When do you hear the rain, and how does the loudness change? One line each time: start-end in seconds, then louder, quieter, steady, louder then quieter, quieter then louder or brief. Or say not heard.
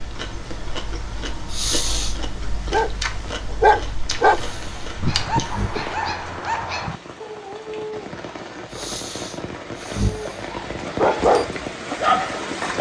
4.0-12.7 louder.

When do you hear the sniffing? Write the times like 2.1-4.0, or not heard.
1.4-2.1, 4.3-5.8, 8.7-10.4.